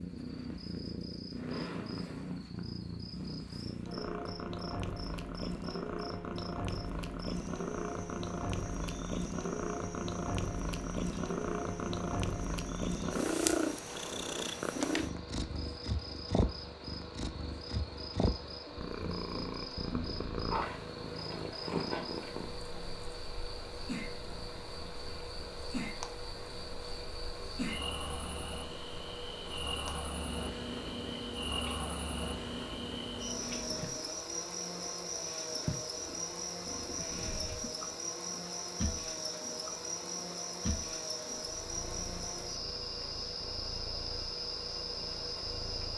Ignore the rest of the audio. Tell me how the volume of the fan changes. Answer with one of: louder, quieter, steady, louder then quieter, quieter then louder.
steady.